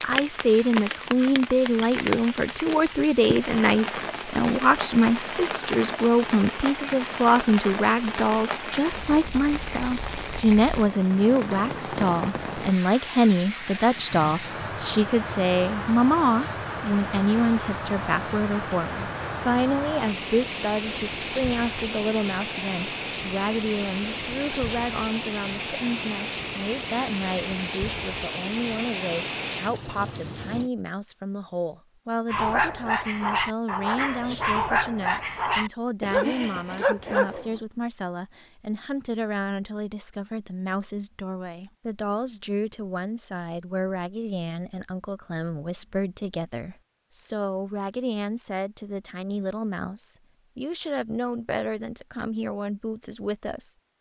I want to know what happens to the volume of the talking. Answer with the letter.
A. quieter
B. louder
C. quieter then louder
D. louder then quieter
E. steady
A.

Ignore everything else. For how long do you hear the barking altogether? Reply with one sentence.
The barking can be heard for 5 seconds in total.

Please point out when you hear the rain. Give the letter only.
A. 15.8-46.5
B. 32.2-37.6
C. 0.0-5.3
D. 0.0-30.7
D.